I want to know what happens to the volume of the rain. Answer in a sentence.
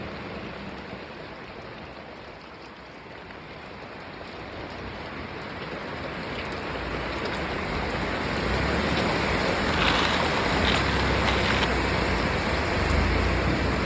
The volume of the rain goes up.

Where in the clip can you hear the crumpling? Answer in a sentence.
The crumpling can be heard from 9.7 to 11.7 s.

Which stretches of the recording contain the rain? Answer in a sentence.
You can hear the rain from 0.0 to 13.8 s.